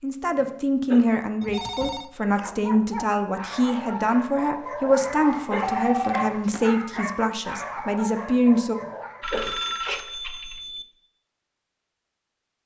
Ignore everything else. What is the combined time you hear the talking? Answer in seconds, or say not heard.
9 s.